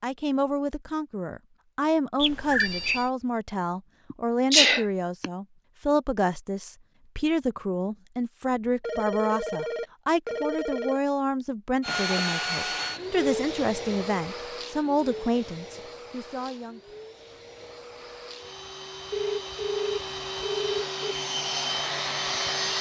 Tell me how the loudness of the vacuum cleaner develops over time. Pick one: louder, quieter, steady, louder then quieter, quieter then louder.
quieter then louder.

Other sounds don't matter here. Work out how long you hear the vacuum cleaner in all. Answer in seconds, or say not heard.
11 s.